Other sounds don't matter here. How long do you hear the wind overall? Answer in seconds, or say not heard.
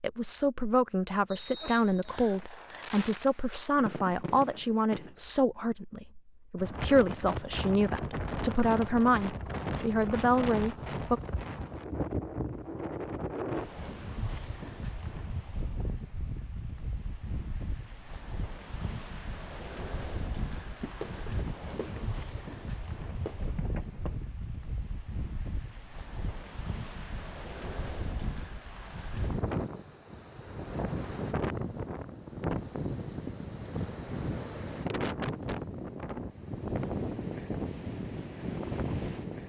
33 s.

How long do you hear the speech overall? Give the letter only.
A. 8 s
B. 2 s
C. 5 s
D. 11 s
D.